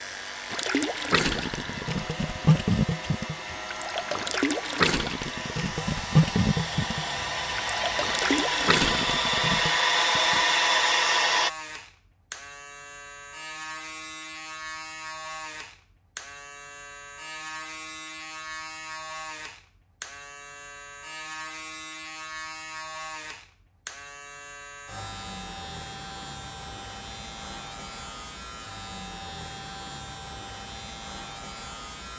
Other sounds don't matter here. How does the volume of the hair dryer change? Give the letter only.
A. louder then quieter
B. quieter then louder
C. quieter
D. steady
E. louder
E.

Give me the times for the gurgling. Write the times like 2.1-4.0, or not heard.
0.5-9.8.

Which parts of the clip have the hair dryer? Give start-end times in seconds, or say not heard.
0.0-11.5.